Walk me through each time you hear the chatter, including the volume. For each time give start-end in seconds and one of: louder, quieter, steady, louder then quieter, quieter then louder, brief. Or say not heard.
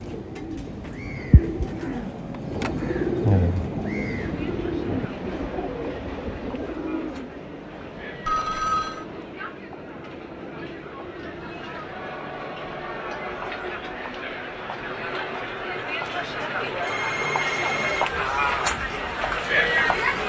4.2-20.2 louder.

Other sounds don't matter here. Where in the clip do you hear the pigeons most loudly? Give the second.
3 s.